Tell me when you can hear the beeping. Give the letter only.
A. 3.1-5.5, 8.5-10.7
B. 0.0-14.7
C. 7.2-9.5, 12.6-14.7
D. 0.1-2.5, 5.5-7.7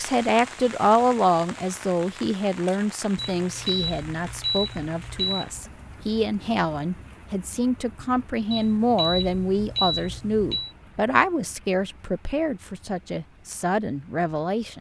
A.